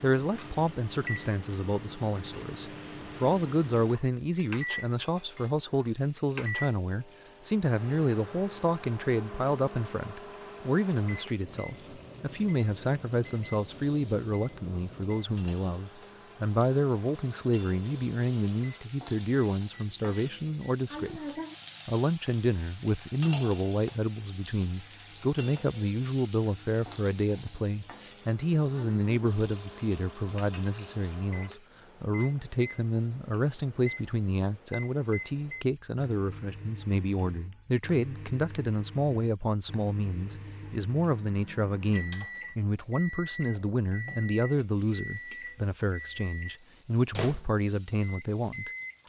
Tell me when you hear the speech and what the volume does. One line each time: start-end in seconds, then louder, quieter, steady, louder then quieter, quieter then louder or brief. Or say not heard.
0.0-48.7 steady.